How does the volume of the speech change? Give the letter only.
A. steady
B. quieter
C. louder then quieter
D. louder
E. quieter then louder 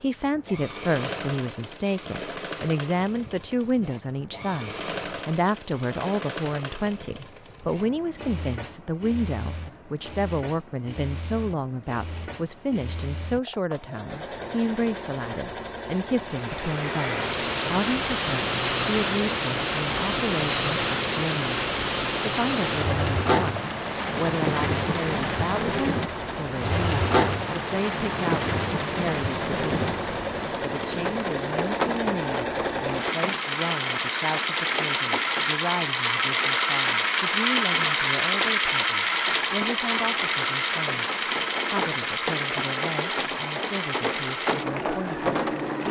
B.